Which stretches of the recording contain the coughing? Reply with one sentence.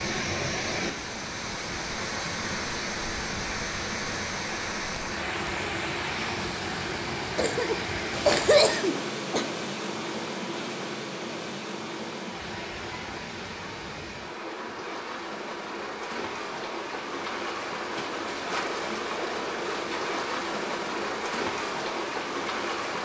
The coughing can be heard from 7.3 to 9.4 s.